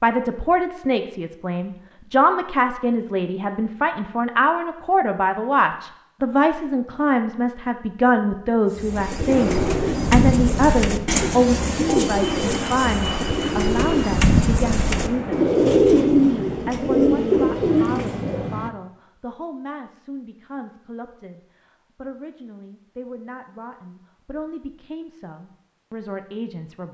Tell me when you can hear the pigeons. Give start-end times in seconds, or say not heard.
8.7-18.5.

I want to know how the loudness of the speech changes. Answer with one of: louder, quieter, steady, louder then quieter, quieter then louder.
quieter.